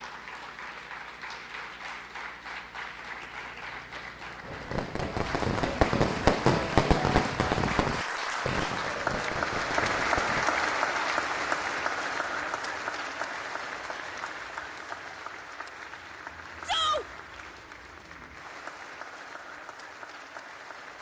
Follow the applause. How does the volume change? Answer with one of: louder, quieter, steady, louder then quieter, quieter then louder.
louder then quieter.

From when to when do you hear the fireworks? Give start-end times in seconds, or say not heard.
4.4-10.5.